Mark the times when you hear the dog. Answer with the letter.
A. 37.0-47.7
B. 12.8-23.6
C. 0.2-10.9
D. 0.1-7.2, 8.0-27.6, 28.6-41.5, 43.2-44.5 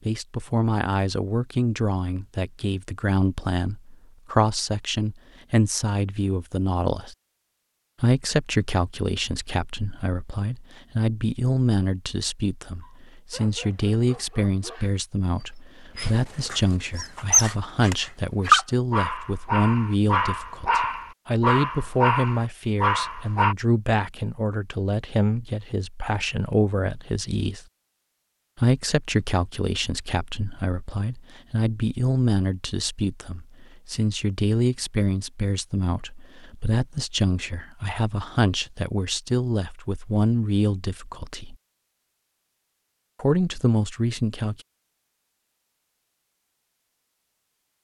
B.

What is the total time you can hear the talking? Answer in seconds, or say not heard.
41 s.